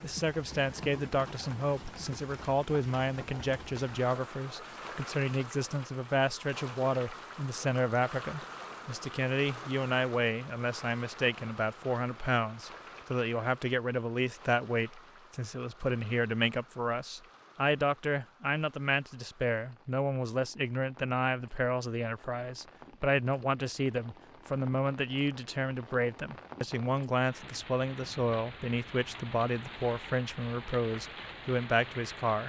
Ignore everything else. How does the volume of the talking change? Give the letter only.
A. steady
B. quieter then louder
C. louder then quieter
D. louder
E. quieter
A.